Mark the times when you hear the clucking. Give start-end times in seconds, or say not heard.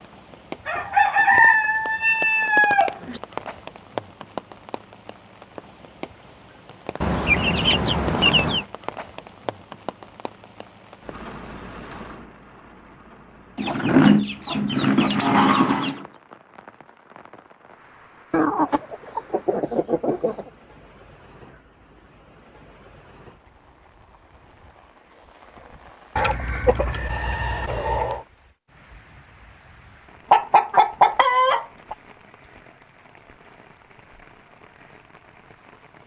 0.7-3.2, 7.0-8.7, 13.6-16.1, 18.3-20.4, 26.1-28.2, 30.3-31.9.